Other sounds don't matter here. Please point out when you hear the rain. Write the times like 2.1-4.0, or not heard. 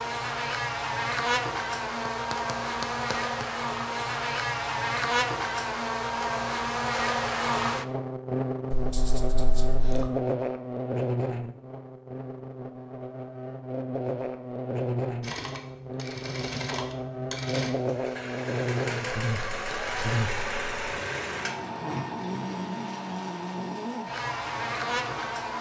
not heard.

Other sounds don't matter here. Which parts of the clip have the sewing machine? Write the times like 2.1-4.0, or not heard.
15.2-25.5.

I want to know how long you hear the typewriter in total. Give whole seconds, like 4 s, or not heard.
not heard.